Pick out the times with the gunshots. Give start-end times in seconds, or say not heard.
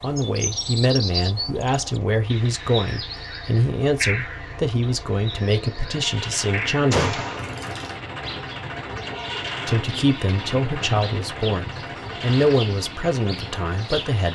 6.9-7.5.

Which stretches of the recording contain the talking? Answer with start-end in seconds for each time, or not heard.
0.0-7.2, 9.7-14.2.